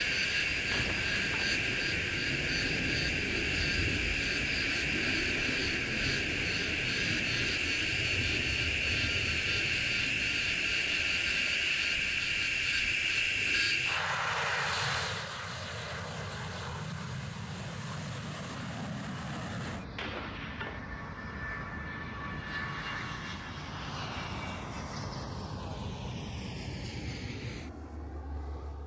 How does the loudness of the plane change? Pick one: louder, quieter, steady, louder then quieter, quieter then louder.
quieter.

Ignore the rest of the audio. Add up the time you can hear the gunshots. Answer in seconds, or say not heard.
2 s.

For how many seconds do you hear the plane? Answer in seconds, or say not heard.
29 s.